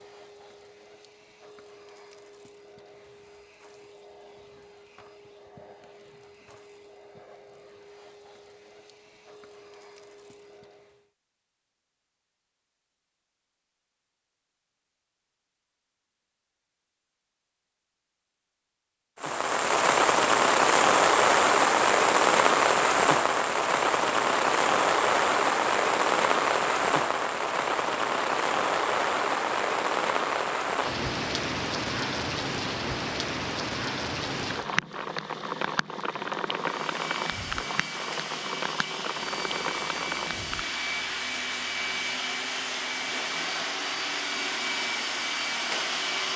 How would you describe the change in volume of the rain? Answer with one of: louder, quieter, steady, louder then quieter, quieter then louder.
quieter.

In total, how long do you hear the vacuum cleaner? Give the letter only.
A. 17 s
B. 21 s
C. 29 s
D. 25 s
B.